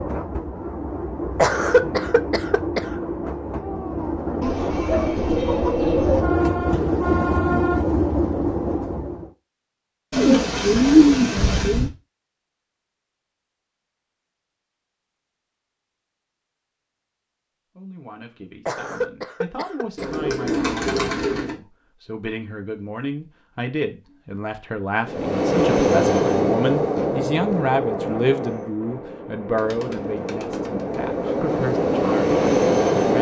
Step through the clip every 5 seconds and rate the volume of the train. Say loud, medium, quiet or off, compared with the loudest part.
medium, loud, off, off, off, loud, loud.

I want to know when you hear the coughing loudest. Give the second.
2 s.